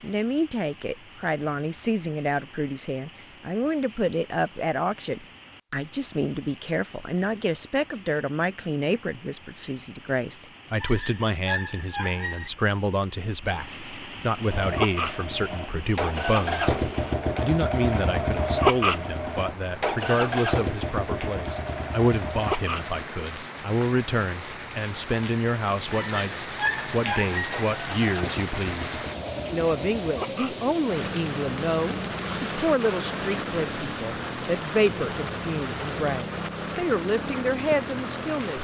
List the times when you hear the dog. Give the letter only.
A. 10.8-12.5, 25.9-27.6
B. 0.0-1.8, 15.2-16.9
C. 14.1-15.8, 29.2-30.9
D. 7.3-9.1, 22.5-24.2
A.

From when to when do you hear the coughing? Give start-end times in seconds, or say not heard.
not heard.